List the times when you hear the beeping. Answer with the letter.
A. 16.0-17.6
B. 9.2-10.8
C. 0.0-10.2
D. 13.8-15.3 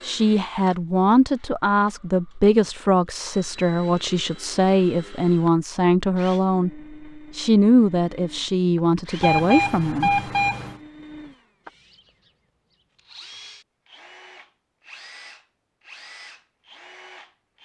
B.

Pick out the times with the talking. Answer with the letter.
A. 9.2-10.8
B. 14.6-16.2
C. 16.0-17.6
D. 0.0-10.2
D.